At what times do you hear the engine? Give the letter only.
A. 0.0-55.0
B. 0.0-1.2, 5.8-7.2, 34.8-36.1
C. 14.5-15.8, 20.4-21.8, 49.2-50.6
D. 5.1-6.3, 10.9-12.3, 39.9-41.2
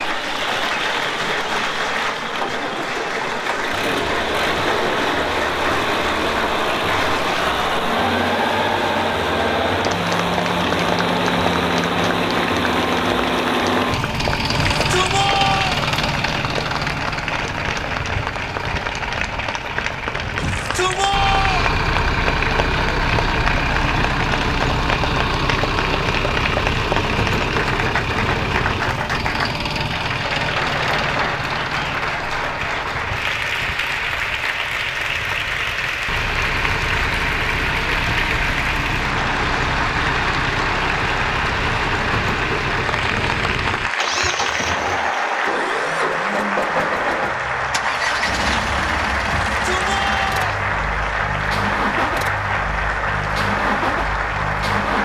A.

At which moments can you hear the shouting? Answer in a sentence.
The shouting can be heard from 14.5 to 15.8 s, from 20.4 to 21.8 s and from 49.2 to 50.6 s.